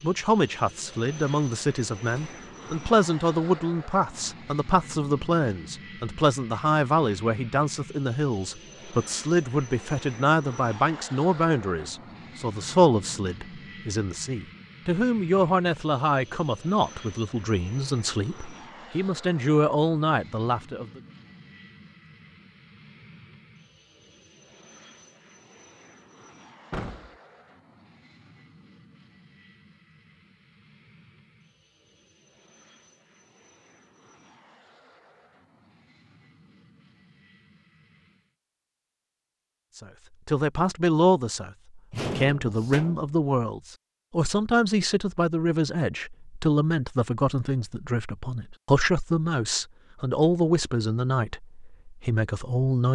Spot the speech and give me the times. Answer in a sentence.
The speech can be heard from 0.0 to 21.0 s and from 39.8 to 52.9 s.